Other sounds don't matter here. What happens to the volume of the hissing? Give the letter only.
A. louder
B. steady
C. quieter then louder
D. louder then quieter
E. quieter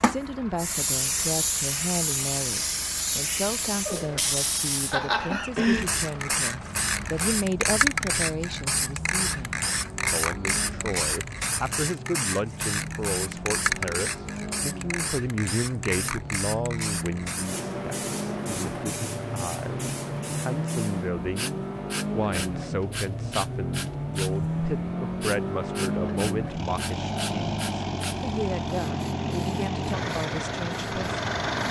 E.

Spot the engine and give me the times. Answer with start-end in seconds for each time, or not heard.
0.0-31.6.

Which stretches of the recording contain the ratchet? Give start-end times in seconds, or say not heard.
not heard.